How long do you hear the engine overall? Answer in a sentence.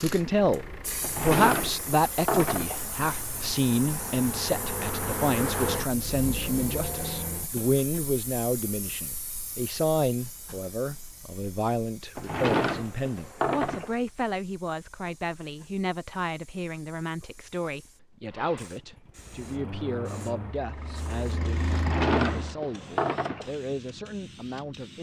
You can hear the engine for 12 seconds altogether.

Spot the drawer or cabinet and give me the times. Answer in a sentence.
The drawer or cabinet can be heard from 1.0 to 2.8 s, from 12.2 to 13.9 s and from 21.7 to 23.5 s.